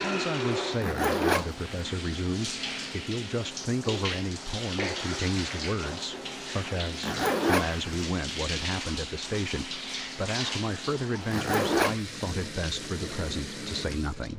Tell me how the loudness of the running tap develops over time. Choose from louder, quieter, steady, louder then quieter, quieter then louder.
steady.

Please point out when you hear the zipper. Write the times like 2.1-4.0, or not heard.
0.7-1.6, 6.9-7.8, 11.2-12.2.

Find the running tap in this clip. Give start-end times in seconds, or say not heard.
0.0-14.3.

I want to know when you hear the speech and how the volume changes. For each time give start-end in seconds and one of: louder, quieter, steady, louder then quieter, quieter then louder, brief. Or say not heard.
0.0-14.3 steady.